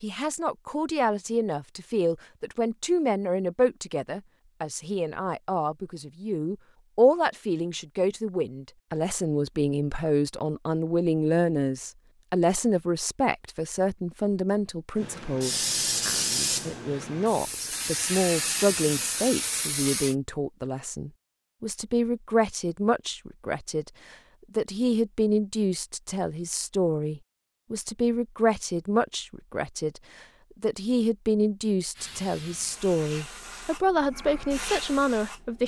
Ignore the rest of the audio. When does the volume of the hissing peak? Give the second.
16 s.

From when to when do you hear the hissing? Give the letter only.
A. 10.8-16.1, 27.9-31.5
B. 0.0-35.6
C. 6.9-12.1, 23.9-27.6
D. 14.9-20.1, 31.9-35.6
D.